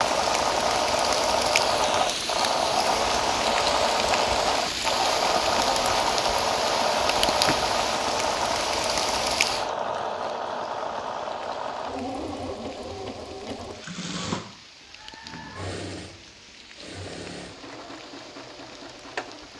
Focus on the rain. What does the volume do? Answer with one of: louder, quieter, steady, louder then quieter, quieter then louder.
quieter.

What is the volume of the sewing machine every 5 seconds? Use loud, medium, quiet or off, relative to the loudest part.
loud, loud, medium, quiet.